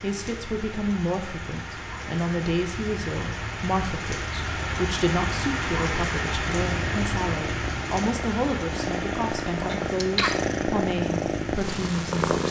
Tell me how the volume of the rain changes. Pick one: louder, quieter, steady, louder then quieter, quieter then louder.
louder then quieter.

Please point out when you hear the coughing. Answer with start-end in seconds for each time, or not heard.
9.7-10.6.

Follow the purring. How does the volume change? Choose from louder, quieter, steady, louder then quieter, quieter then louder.
louder.